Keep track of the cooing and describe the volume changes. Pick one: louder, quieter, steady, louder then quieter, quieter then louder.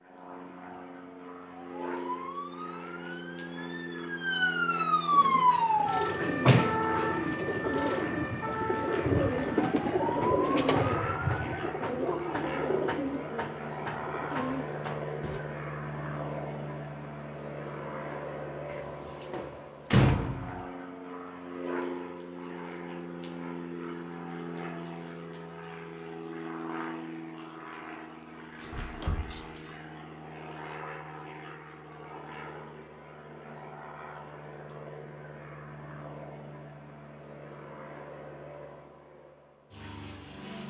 louder then quieter.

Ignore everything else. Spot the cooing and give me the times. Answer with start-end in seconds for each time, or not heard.
5.1-15.4.